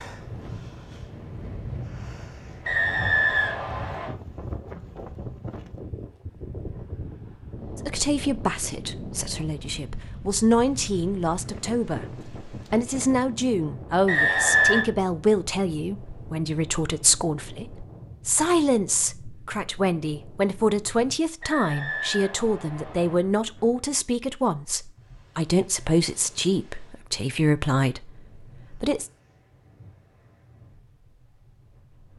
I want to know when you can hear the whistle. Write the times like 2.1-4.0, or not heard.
2.6-4.2, 14.1-14.8, 21.4-23.1.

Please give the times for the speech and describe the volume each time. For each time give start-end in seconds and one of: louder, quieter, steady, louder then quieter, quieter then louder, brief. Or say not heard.
7.8-29.1 steady.